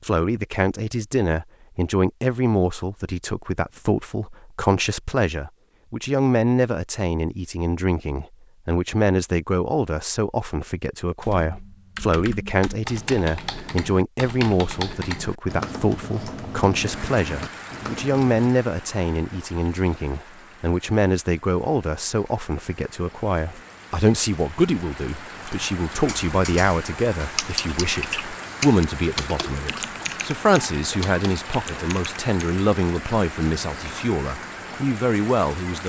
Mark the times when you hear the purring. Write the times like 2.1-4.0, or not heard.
not heard.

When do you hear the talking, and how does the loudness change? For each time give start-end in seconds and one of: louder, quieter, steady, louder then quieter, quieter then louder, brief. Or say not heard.
0.0-35.8 steady.